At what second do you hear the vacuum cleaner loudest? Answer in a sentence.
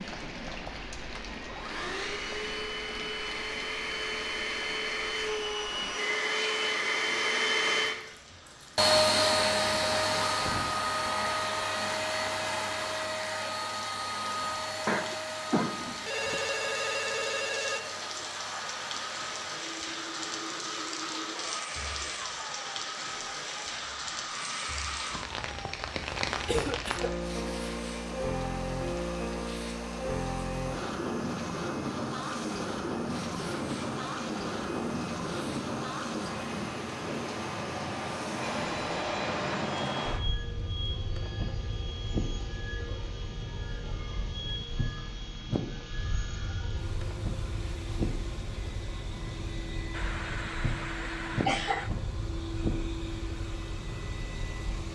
The volume of the vacuum cleaner peaks at 9 seconds.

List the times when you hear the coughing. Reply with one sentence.
You can hear the coughing from 14.8 to 16.4 s, from 26.4 to 27.1 s and from 49.9 to 51.9 s.